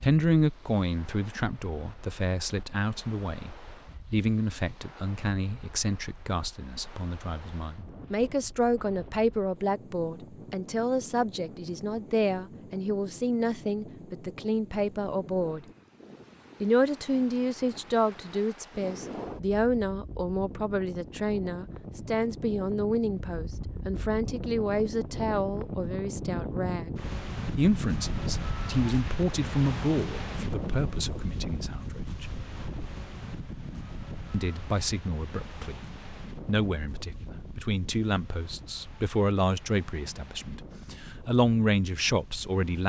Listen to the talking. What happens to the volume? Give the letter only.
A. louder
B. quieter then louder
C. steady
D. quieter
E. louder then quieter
C.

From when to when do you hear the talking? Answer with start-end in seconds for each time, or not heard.
0.0-15.7, 16.6-26.9, 27.6-32.3, 34.3-42.8.